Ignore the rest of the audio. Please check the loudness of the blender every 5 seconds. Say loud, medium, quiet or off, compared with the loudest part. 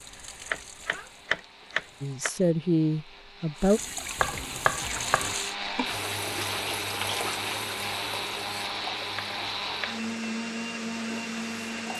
quiet, loud, loud.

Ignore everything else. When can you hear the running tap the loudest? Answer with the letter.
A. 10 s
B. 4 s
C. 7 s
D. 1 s
C.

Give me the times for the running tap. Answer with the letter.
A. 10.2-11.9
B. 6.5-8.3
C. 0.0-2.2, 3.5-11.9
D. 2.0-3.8
C.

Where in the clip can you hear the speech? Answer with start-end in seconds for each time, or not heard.
2.0-3.8.